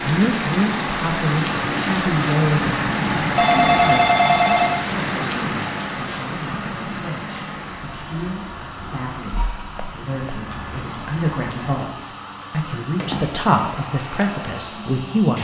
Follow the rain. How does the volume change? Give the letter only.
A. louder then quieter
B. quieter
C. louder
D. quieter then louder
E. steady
B.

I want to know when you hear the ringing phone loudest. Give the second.
4 s.